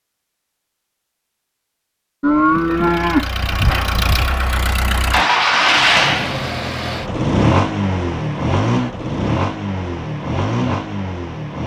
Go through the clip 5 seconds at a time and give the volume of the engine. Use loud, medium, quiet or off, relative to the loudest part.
medium, loud, medium.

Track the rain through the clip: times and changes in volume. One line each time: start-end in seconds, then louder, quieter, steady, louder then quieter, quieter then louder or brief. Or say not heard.
not heard.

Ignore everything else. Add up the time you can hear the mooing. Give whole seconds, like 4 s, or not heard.
2 s.